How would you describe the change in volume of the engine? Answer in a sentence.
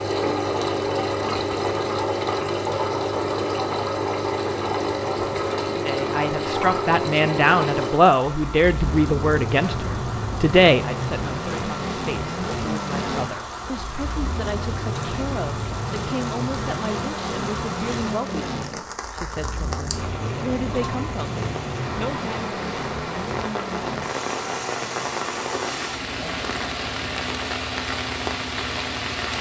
The loudness of the engine goes down.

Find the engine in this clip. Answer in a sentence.
You can hear the engine from 0.0 to 29.3 s.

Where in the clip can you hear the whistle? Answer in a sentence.
The whistle can't be heard in this clip.